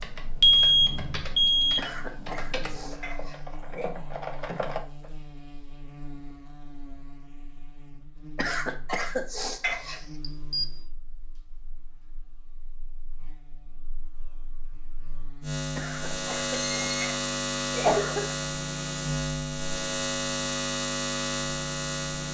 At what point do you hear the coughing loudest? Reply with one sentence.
The loudest moment of the coughing is at 18 seconds.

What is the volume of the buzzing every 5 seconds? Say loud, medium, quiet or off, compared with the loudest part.
quiet, quiet, quiet, loud, loud.